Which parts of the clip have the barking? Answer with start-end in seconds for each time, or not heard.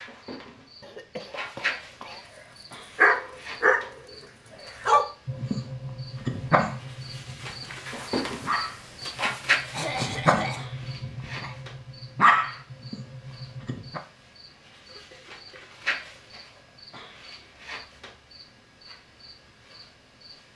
2.7-3.9, 4.8-11.6, 12.2-14.0.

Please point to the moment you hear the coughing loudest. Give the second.
10 s.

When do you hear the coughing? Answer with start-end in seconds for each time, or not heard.
0.8-2.2, 9.7-10.7, 14.8-15.7.